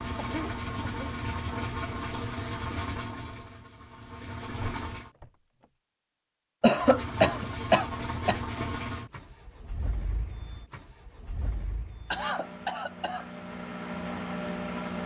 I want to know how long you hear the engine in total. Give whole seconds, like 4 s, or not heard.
13 s.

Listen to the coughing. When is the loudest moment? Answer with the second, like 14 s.
7 s.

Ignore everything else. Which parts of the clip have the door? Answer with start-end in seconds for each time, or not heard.
4.6-5.7.